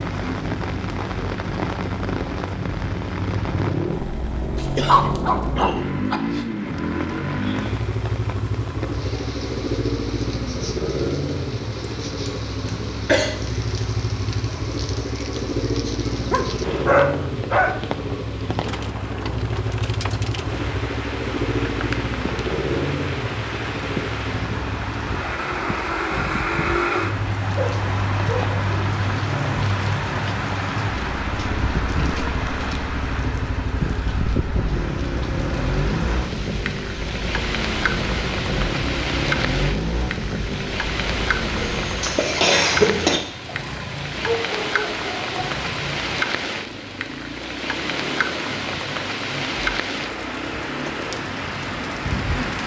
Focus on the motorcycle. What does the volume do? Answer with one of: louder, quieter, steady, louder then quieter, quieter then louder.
quieter.